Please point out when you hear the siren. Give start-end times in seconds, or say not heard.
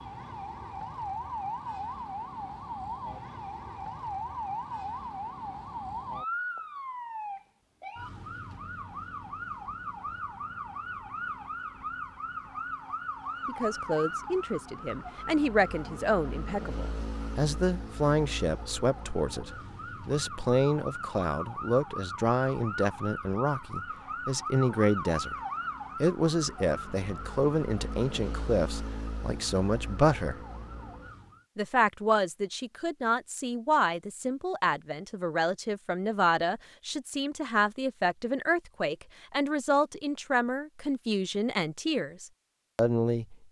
0.0-31.4.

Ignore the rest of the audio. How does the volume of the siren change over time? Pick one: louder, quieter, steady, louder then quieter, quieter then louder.
steady.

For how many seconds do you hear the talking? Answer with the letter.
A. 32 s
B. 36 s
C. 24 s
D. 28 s
D.